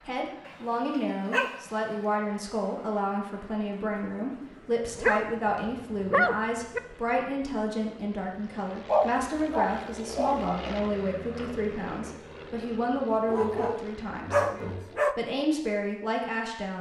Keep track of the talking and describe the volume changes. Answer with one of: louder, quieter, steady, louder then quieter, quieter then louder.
steady.